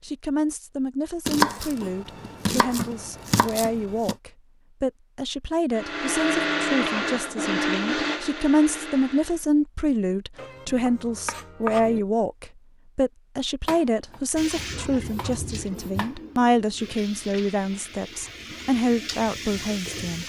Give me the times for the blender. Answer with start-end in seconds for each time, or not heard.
5.7-9.4.